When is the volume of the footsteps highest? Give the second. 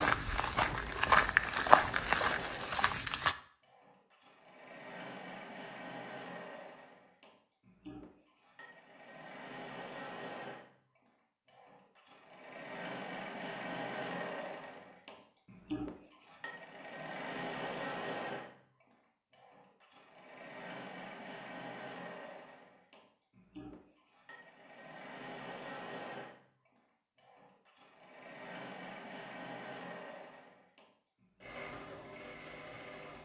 2 s.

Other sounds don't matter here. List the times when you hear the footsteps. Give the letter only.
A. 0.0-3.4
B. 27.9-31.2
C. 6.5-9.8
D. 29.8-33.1
A.